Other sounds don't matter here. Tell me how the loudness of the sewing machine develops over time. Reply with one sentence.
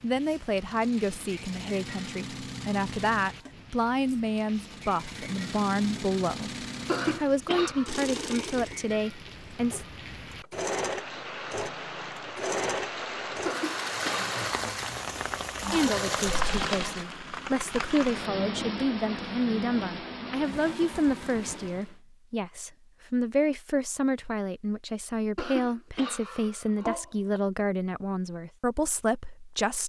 The volume of the sewing machine goes up.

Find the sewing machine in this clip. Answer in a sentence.
You can hear the sewing machine from 0.2 to 17.1 s.